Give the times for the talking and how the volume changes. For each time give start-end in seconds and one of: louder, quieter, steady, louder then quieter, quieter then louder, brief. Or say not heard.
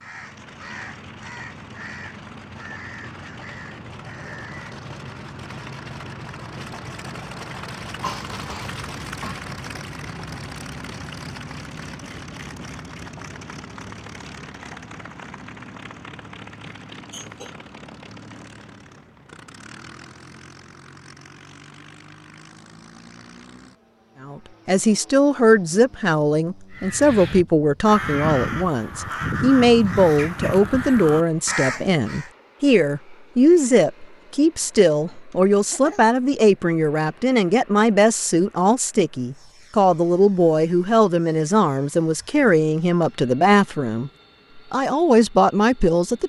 24.2-46.2 steady.